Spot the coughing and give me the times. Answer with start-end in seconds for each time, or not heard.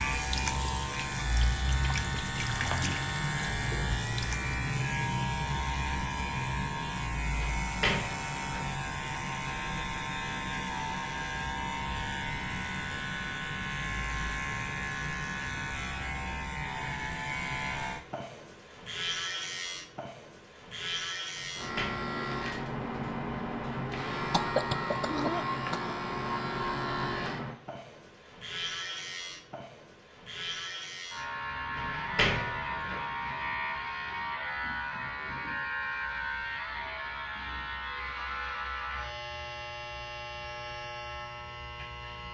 24.3-25.9.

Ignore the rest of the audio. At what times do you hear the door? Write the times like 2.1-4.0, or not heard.
7.4-8.7, 21.4-22.0, 31.8-33.0.